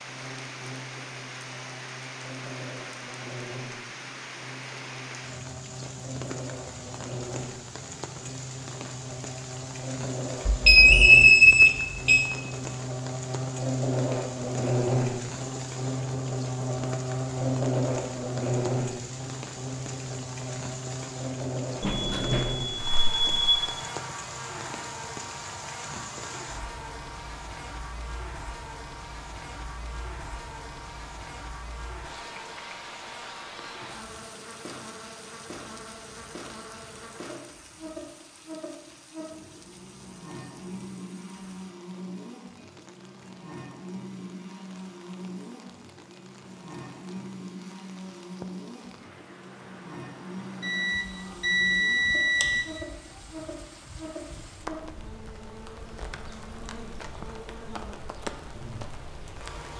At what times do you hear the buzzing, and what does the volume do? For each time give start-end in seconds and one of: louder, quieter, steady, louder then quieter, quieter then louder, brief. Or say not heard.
0.0-59.7 louder then quieter.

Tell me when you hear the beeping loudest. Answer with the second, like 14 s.
11 s.